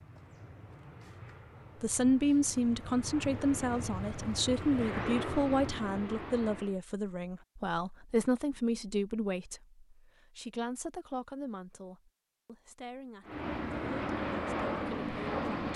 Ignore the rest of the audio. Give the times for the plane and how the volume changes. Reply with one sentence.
You can hear the plane from 0.0 to 6.8 s, getting louder; and briefly from 13.2 to 15.7 s.